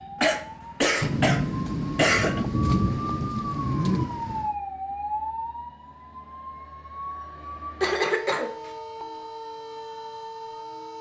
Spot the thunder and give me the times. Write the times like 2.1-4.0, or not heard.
1.0-4.5.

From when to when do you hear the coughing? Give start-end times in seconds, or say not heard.
0.2-2.5, 7.8-8.6.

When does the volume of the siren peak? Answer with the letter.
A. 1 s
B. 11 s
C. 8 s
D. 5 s
D.